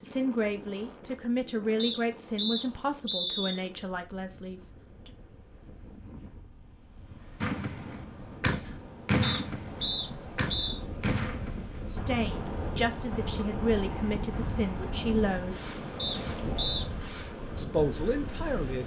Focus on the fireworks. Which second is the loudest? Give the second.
9 s.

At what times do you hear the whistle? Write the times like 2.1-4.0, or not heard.
1.8-3.6, 9.2-10.8, 15.9-16.9.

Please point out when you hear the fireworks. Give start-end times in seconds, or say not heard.
7.4-17.4.